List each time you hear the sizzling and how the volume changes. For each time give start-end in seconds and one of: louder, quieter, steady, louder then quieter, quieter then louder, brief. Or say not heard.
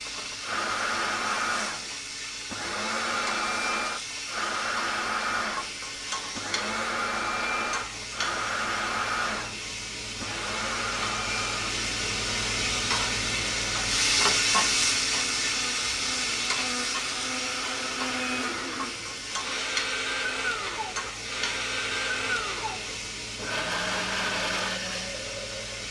0.0-25.8 louder then quieter.